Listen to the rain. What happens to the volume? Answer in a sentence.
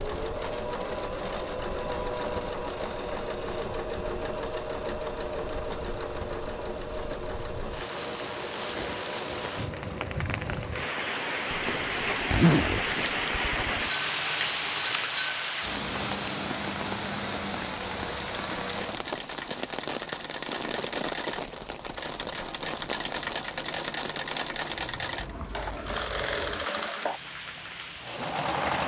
The loudness of the rain goes up, then down.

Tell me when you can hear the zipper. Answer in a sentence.
You can hear the zipper from 11.5 to 13.9 s.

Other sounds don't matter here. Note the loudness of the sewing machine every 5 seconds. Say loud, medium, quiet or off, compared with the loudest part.
loud, loud, medium, medium, loud, loud.